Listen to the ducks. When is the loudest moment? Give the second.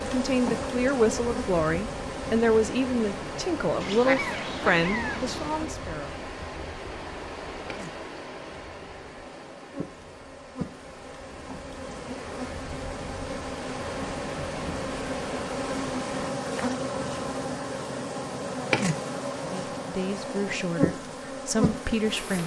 4 s.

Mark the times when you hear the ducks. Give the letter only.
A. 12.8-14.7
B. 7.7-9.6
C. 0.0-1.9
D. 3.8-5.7
D.